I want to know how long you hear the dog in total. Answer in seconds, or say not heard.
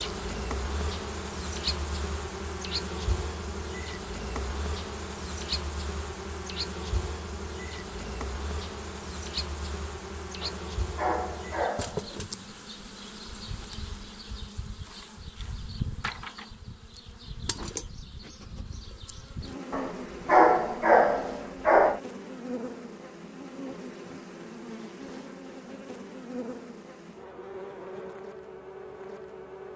4 s.